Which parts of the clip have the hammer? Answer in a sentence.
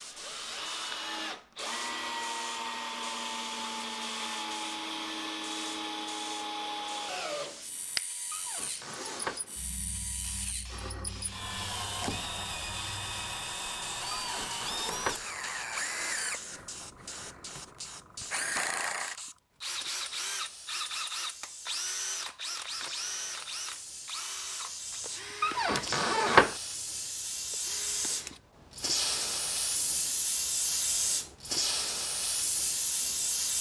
The hammer can't be heard in this clip.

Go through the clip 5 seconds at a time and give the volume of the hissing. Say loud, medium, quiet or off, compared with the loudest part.
quiet, medium, quiet, quiet, quiet, loud, loud.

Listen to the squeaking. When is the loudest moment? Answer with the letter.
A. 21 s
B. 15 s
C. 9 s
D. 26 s
D.